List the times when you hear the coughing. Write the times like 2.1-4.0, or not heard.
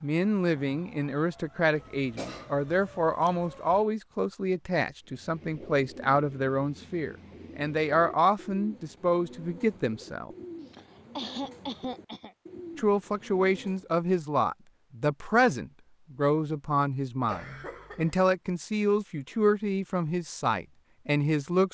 1.7-3.0, 10.6-12.3, 17.2-18.2.